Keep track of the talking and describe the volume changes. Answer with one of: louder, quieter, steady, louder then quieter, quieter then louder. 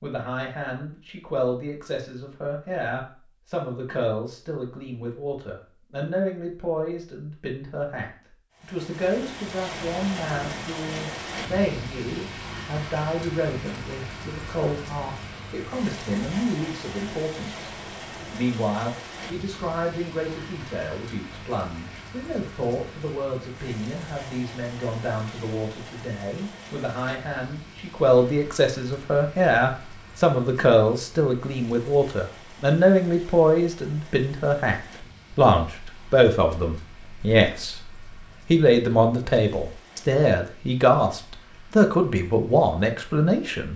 louder.